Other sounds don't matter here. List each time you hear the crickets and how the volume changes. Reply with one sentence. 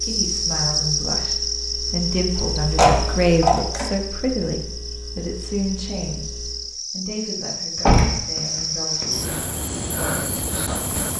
You can hear the crickets from 0.0 to 11.1 s, getting quieter then louder.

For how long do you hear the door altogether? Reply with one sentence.
You can hear the door for 3 seconds altogether.